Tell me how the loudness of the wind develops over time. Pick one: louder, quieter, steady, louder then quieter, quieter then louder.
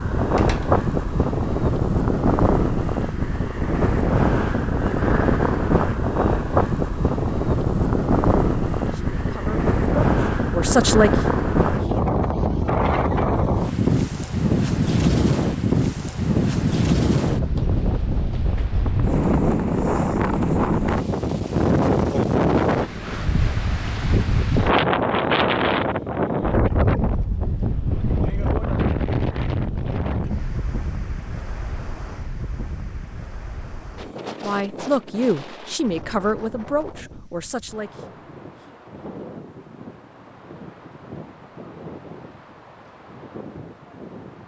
quieter.